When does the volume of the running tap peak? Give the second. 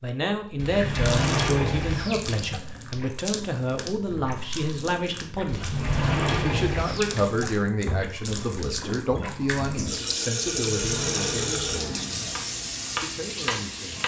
11 s.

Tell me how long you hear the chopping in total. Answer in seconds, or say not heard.
2 s.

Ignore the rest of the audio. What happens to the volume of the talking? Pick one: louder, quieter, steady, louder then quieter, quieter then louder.
quieter.